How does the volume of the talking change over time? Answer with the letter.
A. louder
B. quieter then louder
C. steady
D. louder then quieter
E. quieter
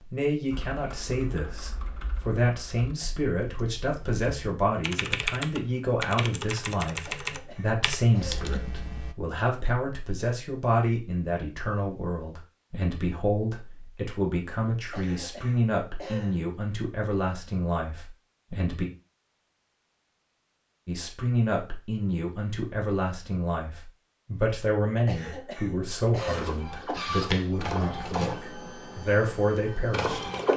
C.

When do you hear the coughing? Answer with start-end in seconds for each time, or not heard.
7.0-8.5, 14.9-16.4, 25.1-26.5.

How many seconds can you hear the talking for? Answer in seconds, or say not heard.
28 s.